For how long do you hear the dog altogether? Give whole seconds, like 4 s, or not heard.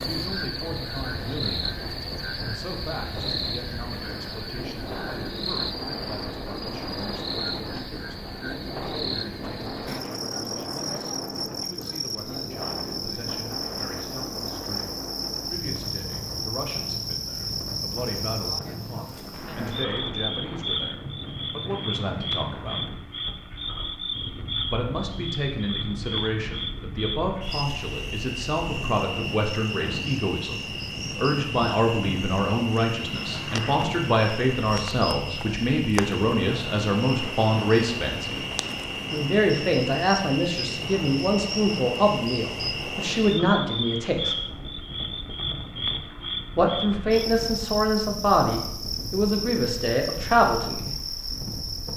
not heard.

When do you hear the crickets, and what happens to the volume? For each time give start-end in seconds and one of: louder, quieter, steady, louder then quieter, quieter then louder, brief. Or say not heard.
0.0-51.9 steady.